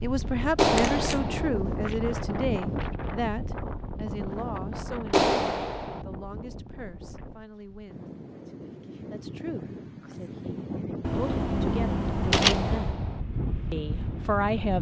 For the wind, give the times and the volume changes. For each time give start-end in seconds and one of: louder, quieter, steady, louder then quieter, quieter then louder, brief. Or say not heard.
0.0-14.7 quieter then louder.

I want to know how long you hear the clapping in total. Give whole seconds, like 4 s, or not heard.
3 s.